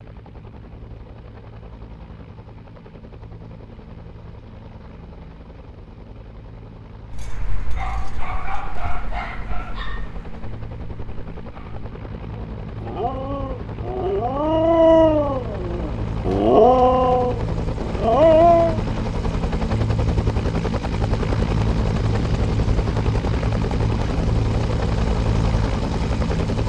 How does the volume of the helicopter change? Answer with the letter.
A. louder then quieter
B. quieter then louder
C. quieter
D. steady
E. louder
E.